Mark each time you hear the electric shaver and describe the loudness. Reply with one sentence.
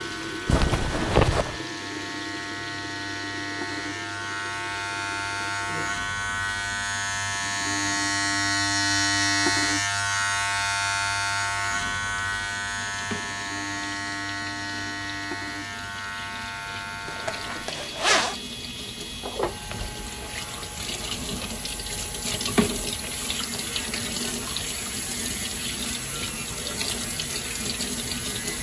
The electric shaver can be heard from 0.0 to 28.5 s, getting louder then quieter.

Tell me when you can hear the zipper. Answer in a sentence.
The zipper can be heard from 0.5 to 1.6 s and from 17.1 to 18.4 s.